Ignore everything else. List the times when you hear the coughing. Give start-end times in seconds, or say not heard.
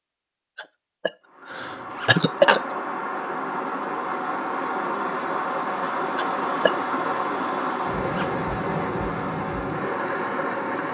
0.6-2.8, 6.2-6.7.